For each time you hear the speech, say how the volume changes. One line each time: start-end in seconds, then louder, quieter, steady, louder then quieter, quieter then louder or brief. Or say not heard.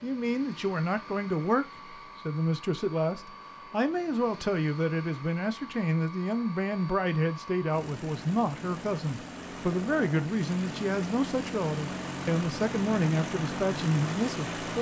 0.0-14.7 steady.